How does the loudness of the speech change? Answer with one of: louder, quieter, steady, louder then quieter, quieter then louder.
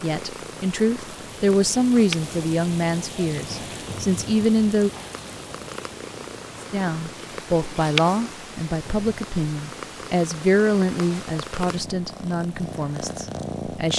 quieter.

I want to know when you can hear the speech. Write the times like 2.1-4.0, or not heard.
0.0-4.9, 6.7-13.9.